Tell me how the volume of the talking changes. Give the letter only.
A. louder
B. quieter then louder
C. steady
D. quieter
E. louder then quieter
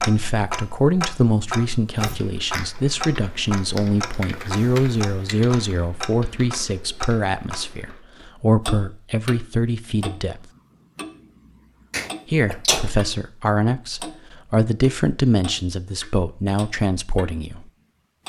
C.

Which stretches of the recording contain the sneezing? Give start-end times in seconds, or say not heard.
11.9-12.9.